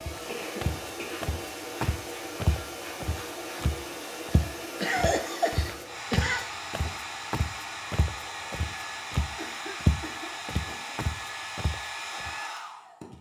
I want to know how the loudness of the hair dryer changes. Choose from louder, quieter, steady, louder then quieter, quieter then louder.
steady.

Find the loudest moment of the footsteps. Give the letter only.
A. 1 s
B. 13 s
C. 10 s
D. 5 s
C.